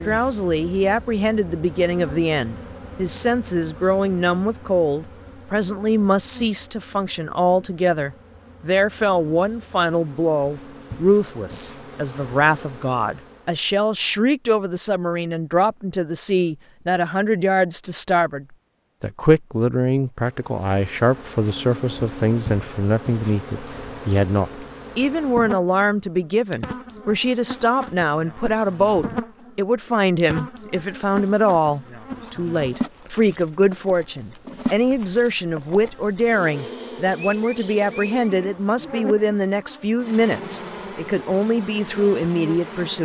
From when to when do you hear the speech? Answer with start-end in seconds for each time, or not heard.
0.1-43.0.